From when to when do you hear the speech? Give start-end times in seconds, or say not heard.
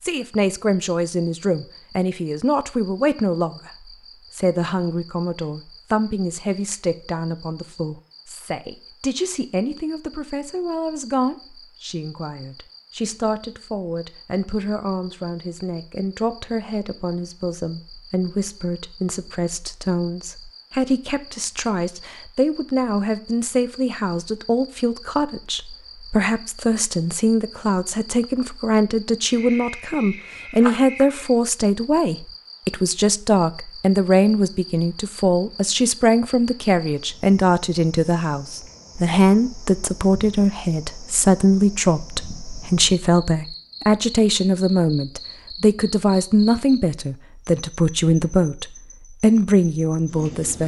0.0-50.6.